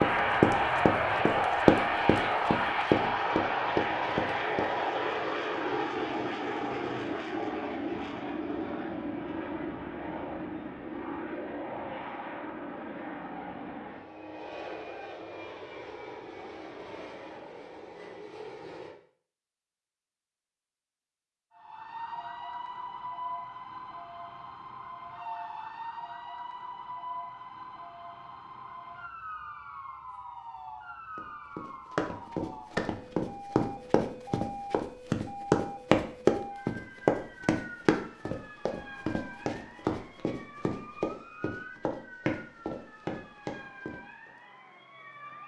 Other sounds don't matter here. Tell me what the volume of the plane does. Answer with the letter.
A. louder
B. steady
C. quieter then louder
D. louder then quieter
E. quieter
E.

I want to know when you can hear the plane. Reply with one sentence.
You can hear the plane from 0.0 to 18.9 s.